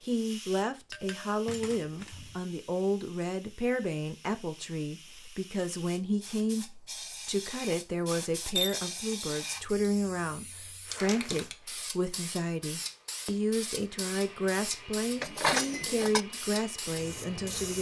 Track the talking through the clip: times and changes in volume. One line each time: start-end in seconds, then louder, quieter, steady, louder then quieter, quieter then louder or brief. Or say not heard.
0.0-17.7 steady.